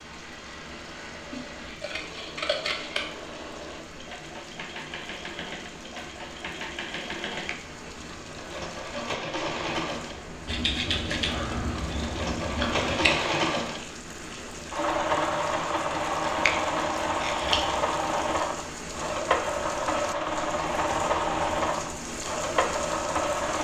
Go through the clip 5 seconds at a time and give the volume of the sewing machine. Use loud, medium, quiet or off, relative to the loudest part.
quiet, medium, loud, loud, loud.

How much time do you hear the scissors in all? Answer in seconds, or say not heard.
6 s.